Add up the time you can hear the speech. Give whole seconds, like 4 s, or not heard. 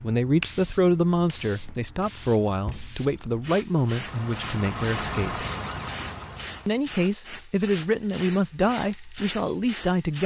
9 s.